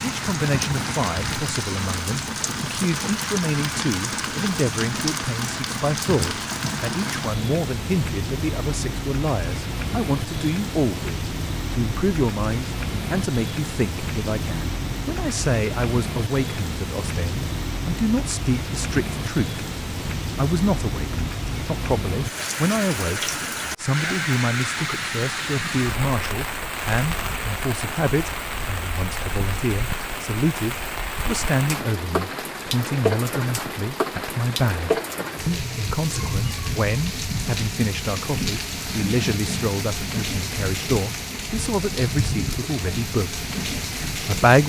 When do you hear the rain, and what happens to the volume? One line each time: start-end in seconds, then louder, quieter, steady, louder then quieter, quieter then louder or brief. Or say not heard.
0.0-44.6 steady.